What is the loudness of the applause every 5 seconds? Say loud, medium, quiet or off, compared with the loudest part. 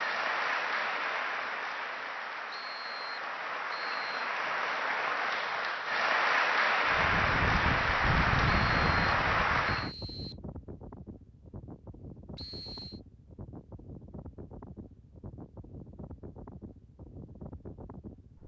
medium, loud, off, off.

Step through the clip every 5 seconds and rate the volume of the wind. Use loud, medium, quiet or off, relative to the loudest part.
off, loud, quiet, quiet.